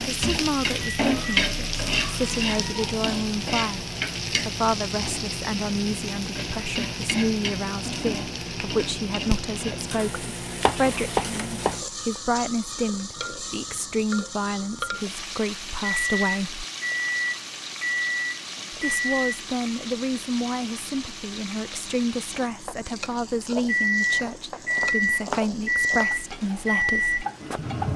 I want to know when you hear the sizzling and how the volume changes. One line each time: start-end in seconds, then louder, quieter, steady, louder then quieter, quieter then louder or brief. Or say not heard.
0.0-27.9 quieter.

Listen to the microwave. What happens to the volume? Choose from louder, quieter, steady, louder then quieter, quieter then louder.
louder.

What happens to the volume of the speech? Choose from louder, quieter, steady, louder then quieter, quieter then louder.
steady.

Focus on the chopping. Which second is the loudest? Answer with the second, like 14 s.
11 s.